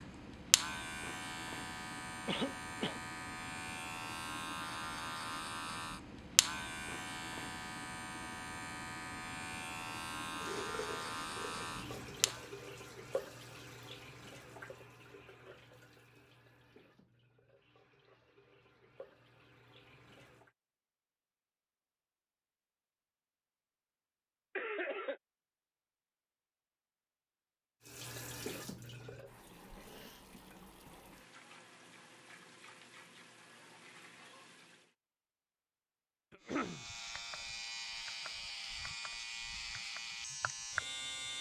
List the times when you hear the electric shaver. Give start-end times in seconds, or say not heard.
0.0-12.5, 36.4-41.3.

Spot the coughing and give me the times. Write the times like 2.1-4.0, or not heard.
2.2-3.0, 24.6-25.1, 36.3-36.9.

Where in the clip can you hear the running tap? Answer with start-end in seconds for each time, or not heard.
10.3-20.5, 27.8-35.0.